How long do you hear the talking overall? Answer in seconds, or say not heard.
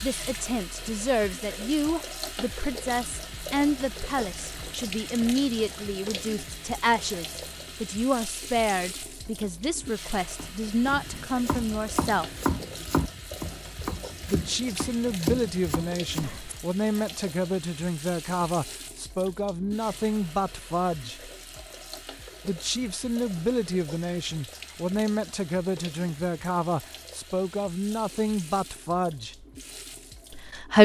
27 s.